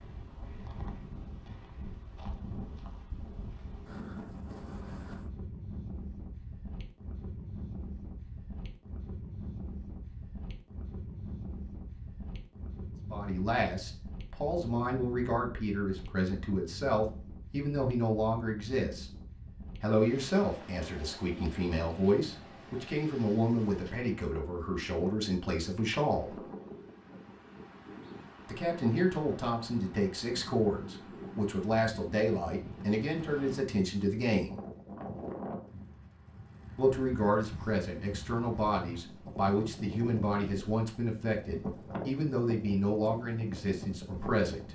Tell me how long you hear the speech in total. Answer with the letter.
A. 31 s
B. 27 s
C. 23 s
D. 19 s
B.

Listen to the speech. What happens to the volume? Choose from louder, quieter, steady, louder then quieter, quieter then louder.
steady.